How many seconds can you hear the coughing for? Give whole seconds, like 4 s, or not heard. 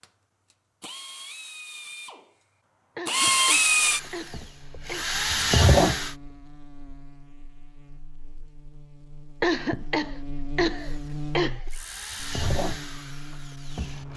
4 s.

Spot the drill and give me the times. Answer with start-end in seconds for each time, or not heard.
0.0-6.2, 10.8-14.1.